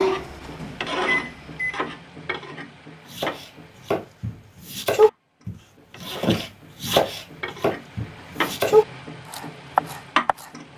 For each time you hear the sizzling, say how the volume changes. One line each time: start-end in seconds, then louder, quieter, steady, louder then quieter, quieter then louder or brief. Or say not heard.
0.0-10.7 quieter then louder.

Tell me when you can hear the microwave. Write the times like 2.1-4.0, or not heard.
0.0-1.9.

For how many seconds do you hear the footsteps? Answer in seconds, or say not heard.
not heard.